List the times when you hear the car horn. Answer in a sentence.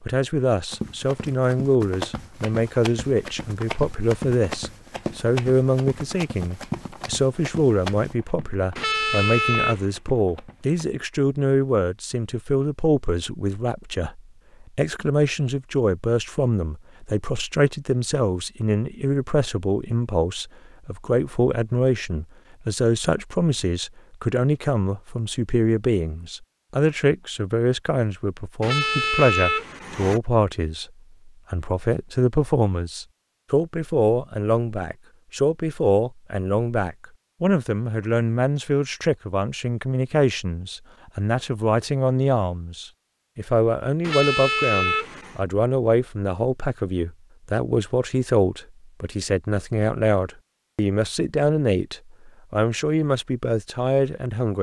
You can hear the car horn from 8.8 to 9.9 s, from 28.6 to 30.2 s and from 44.0 to 45.4 s.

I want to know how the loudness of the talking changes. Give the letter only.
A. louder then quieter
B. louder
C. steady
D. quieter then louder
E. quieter
C.